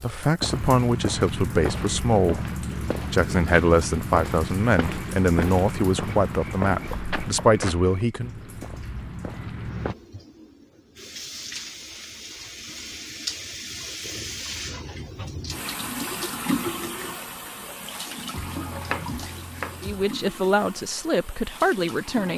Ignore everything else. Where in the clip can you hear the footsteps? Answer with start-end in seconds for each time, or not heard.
0.4-9.9.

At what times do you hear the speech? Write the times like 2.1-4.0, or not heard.
0.0-2.5, 3.1-8.3, 19.8-22.3.